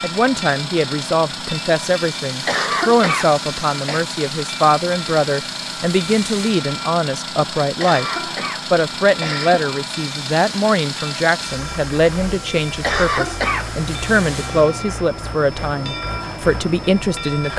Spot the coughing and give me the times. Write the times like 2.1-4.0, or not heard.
2.5-4.0, 7.8-9.7, 12.8-13.7.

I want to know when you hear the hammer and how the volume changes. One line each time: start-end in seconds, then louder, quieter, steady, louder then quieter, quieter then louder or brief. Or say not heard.
not heard.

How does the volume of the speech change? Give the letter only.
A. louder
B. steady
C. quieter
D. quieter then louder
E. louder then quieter
B.